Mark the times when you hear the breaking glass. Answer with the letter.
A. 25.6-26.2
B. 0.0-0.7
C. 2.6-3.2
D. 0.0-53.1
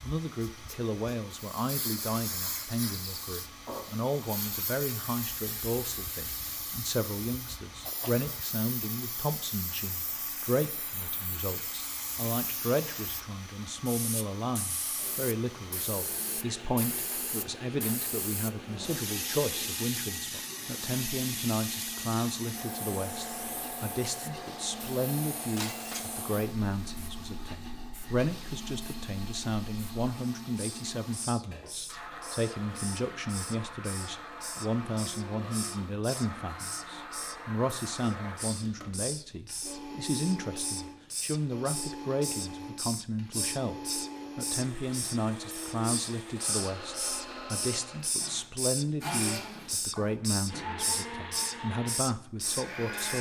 A.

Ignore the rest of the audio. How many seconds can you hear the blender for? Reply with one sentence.
The blender can be heard for 53 seconds in total.